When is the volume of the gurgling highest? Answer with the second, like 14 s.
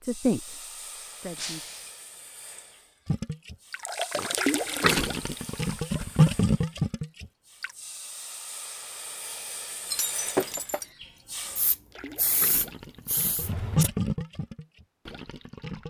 6 s.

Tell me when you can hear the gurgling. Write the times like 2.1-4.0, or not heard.
3.0-7.7, 11.9-15.8.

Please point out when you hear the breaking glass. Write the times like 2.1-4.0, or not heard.
1.4-1.9, 9.9-10.8.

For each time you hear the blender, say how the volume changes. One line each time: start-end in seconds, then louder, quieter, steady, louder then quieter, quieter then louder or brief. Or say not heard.
not heard.